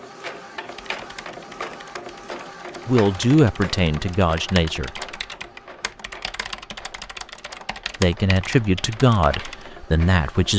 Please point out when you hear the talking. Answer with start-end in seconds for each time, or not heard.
2.9-4.9, 8.0-10.5.